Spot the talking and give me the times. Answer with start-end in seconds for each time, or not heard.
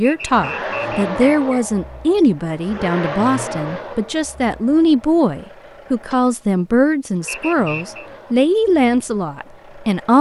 0.0-10.1.